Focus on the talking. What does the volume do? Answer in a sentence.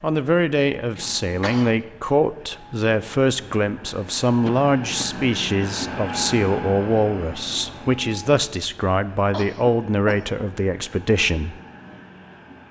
The volume of the talking stays about the same.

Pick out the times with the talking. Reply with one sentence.
The talking can be heard from 0.0 to 11.6 s.